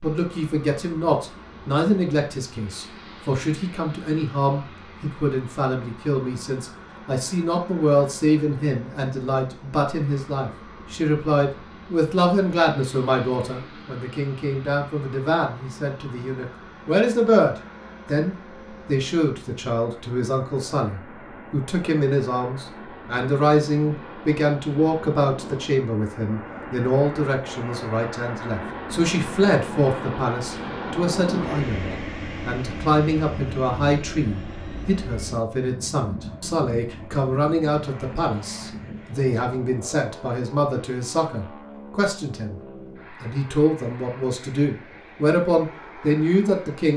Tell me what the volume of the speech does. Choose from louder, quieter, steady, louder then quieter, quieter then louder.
steady.